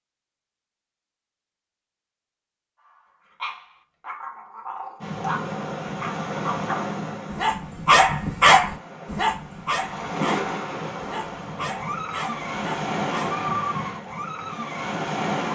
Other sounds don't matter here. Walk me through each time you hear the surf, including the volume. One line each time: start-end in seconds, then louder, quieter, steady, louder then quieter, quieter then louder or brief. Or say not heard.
5.0-15.5 quieter then louder.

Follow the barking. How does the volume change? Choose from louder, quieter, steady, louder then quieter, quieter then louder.
louder then quieter.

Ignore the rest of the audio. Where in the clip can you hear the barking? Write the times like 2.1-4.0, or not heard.
3.4-13.4.